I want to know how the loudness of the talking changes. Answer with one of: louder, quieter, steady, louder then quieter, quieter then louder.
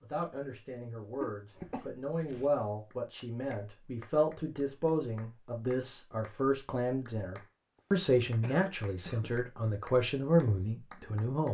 louder.